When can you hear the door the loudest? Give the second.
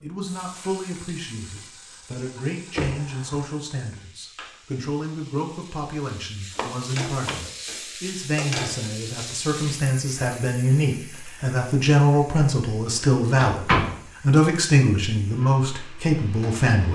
14 s.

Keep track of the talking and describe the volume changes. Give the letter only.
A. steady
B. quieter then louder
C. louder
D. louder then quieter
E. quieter
C.